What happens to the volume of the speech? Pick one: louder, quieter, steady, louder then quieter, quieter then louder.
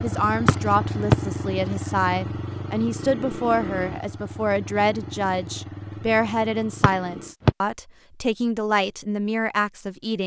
steady.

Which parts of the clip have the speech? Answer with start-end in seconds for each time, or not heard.
0.0-10.2.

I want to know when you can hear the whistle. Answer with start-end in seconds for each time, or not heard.
0.5-1.1, 6.8-7.5.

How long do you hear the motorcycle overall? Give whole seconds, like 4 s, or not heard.
7 s.